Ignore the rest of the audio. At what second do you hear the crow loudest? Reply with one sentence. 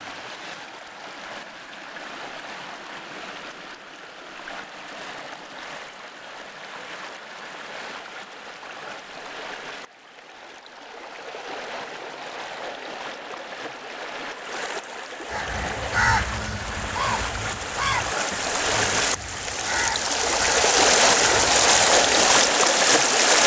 The volume of the crow peaks at 16 seconds.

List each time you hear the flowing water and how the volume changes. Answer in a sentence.
You can hear the flowing water from 0.0 to 23.4 s, getting louder.